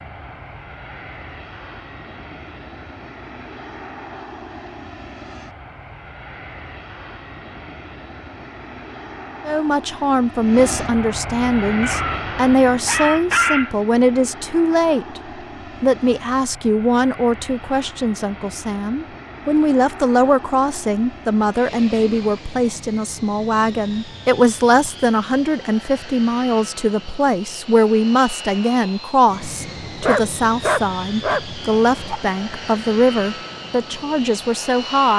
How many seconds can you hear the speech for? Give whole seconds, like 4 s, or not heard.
25 s.